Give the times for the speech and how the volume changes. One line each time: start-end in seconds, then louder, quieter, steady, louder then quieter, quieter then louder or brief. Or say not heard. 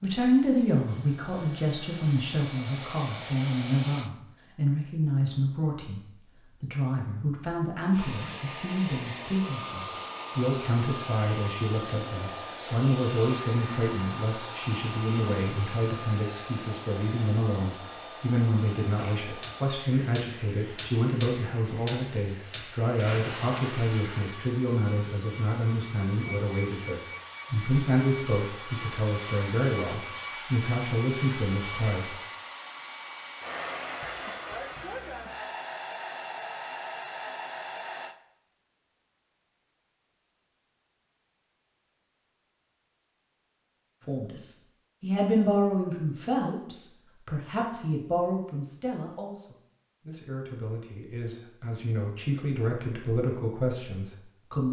0.0-32.1 steady
44.0-54.6 quieter then louder.